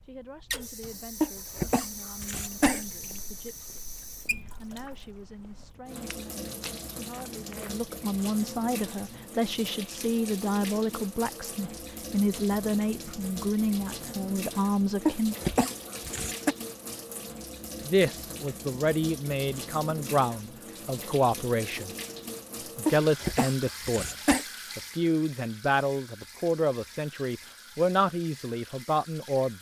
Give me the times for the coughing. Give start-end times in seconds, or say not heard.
1.2-2.9, 15.1-16.6, 22.9-24.4.